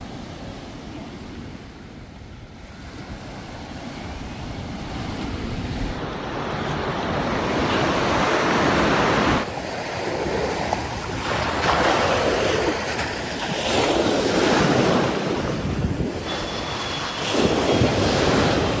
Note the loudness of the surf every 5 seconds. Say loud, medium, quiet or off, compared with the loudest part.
quiet, loud, loud, loud.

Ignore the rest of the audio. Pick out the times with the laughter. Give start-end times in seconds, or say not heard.
not heard.